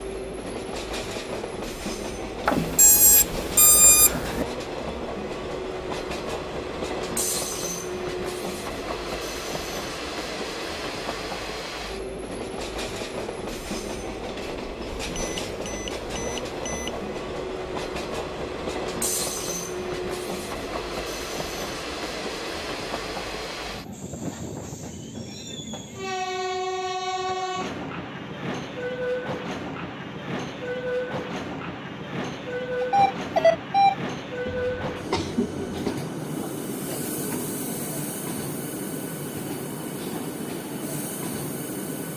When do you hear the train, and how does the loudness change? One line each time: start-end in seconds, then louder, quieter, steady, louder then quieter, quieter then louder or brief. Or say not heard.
0.0-42.1 steady.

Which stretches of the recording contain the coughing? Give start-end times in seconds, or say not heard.
34.5-36.0.